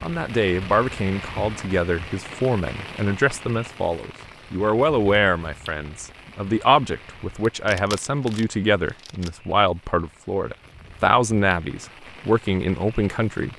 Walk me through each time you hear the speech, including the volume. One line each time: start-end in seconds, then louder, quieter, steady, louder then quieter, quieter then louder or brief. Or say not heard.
0.0-13.5 steady.